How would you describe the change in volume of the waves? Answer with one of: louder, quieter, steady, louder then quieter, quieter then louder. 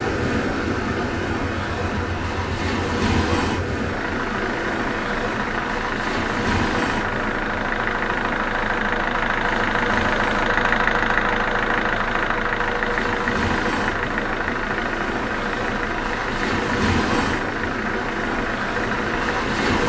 quieter then louder.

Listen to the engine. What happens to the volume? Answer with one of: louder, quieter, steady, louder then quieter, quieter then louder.
louder then quieter.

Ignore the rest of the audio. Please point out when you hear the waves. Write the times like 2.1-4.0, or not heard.
0.0-19.8.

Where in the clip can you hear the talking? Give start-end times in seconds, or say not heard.
not heard.